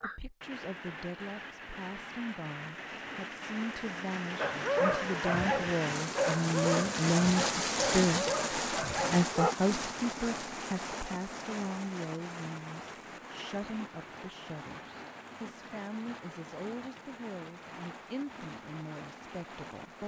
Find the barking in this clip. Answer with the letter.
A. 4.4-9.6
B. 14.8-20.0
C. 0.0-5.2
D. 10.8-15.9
A.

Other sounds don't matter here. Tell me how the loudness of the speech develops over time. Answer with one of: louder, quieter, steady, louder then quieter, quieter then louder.
louder then quieter.